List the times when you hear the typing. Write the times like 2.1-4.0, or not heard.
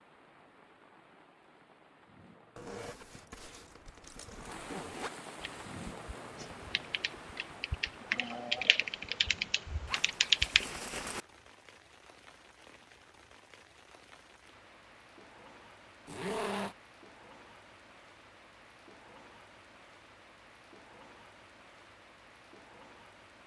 5.4-10.7.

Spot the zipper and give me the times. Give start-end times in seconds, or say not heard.
2.5-5.1, 9.8-11.2, 16.1-16.8.